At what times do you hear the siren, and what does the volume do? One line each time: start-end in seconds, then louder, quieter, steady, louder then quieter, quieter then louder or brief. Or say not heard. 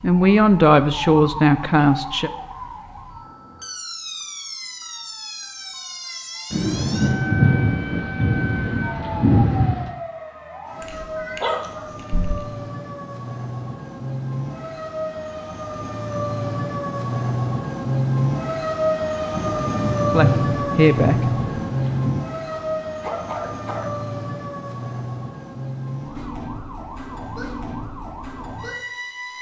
0.0-29.3 louder then quieter.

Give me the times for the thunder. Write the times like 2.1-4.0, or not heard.
6.5-9.9, 19.3-22.2.